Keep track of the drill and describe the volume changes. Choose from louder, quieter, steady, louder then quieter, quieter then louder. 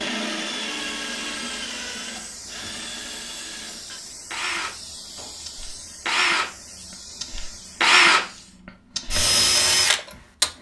quieter then louder.